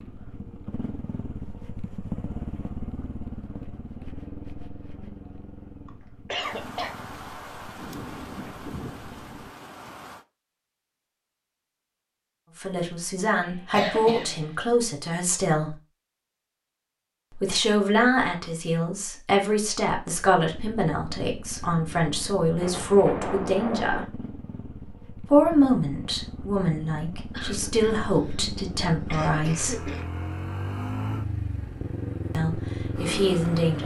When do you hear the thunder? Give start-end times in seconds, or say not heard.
6.4-10.2, 22.6-24.1.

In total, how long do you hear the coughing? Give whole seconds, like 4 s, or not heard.
5 s.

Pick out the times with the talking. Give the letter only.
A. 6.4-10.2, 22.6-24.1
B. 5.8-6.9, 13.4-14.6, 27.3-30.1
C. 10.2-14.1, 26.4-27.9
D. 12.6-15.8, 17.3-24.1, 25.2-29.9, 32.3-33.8
D.